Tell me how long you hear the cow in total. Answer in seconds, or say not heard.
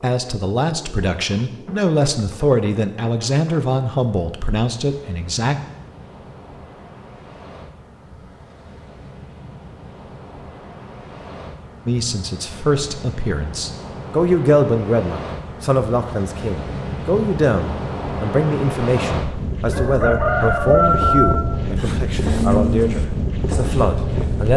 3 s.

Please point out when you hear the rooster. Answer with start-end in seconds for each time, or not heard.
19.7-21.4.